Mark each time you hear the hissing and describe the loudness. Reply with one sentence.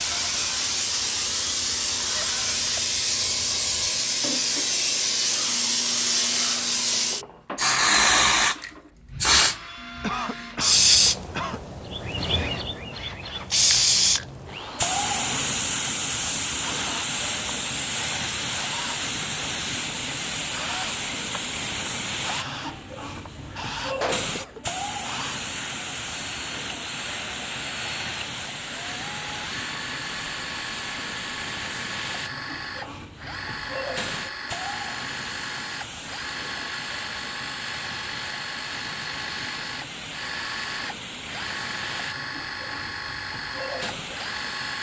The hissing can be heard from 0.0 to 44.7 s, getting quieter.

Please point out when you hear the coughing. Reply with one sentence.
You can hear the coughing from 10.0 to 11.6 s and from 24.0 to 24.6 s.